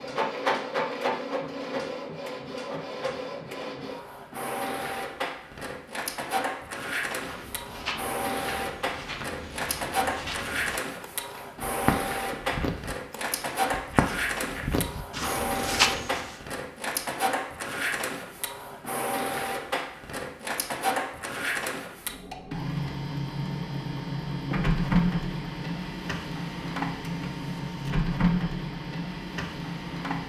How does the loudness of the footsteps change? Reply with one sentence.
The loudness of the footsteps goes up.